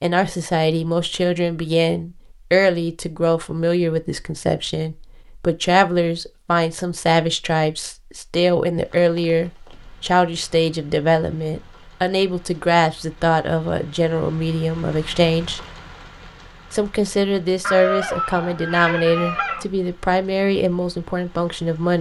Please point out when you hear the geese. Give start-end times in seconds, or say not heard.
17.6-19.6.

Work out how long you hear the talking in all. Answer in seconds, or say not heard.
21 s.